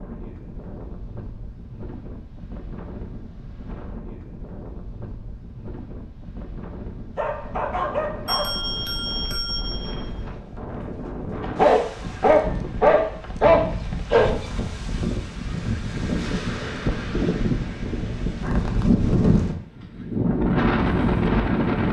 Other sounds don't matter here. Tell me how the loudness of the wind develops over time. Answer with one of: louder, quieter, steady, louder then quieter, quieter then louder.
louder.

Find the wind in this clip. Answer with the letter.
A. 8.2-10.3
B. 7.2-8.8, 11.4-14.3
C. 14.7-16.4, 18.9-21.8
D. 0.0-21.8
D.